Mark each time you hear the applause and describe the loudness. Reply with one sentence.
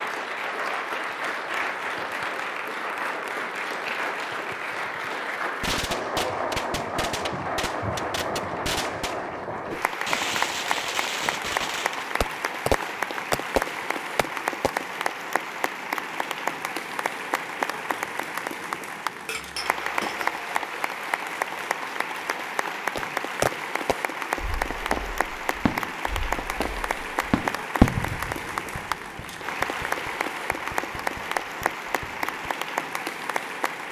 The applause can be heard from 0.0 to 33.8 s, at a steady volume.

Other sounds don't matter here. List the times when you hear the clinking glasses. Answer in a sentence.
The clinking glasses can be heard from 19.2 to 20.4 s.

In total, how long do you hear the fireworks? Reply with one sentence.
You can hear the fireworks for 19 seconds altogether.